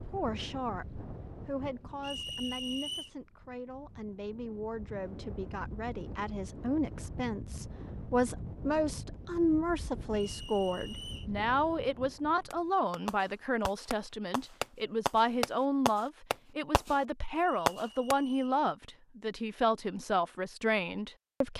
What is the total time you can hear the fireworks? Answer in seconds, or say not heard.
5 s.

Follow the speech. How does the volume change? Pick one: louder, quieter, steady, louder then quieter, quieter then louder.
louder.